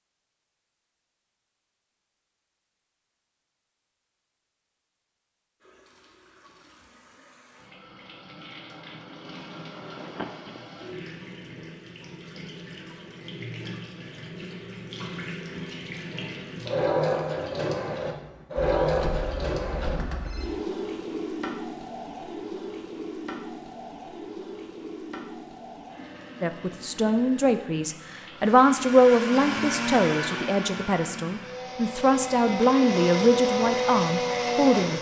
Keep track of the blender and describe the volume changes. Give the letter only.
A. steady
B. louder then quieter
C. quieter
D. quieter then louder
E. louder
D.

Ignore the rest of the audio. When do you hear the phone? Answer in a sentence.
The phone can be heard from 9.9 to 10.6 s and from 18.8 to 20.5 s.